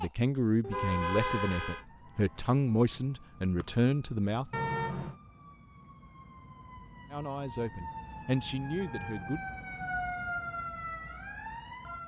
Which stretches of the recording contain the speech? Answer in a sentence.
You can hear the speech from 0.0 to 4.5 s and from 7.1 to 9.4 s.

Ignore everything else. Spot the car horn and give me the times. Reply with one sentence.
The car horn can be heard from 0.6 to 1.9 s, from 4.5 to 5.2 s and from 8.8 to 9.3 s.